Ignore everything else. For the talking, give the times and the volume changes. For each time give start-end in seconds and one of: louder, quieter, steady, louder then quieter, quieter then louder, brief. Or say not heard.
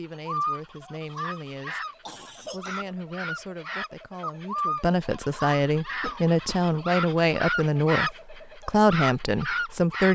0.0-10.0 louder.